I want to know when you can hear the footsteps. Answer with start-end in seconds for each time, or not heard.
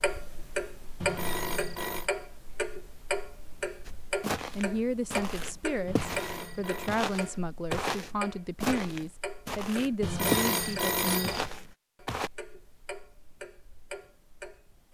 3.9-12.3.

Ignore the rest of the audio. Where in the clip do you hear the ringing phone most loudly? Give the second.
10 s.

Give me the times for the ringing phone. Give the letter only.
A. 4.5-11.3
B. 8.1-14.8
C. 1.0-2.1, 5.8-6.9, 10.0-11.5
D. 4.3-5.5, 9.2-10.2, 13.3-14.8
C.